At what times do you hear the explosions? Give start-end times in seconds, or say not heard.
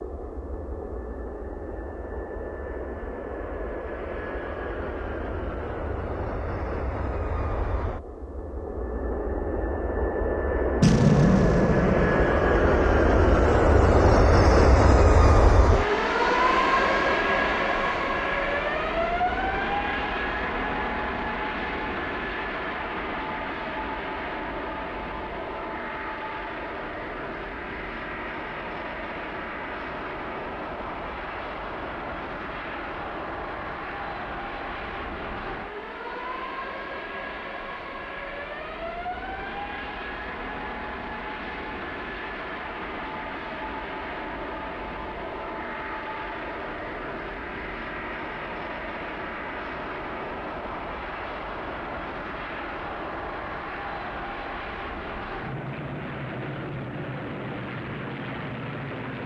10.8-13.0.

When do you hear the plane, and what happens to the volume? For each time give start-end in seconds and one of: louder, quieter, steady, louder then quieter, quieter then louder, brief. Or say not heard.
0.0-59.2 louder then quieter.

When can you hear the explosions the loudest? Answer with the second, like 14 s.
11 s.